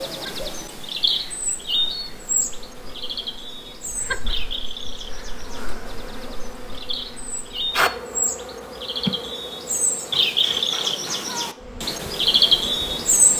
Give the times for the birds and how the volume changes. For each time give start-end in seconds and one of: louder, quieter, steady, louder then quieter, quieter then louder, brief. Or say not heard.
0.0-13.3 quieter then louder.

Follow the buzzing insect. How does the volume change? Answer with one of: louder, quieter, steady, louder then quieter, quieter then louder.
louder then quieter.